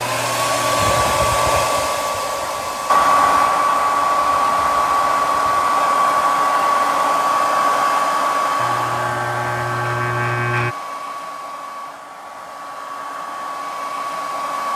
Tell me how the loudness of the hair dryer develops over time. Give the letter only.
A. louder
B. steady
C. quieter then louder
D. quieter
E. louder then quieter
D.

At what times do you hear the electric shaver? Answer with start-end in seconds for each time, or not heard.
0.0-1.7, 8.6-10.8.